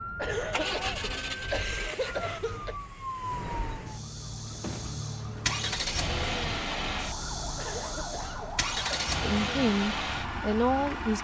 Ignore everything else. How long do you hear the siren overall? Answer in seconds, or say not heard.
11 s.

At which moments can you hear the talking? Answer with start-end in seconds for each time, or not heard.
9.2-11.1.